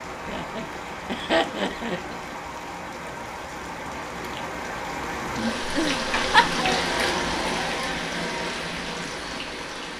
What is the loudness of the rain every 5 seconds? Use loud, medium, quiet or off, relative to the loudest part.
medium, loud.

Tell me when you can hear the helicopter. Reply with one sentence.
You can't hear the helicopter here.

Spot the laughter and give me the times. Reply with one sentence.
The laughter can be heard from 0.2 to 2.2 s and from 5.6 to 6.6 s.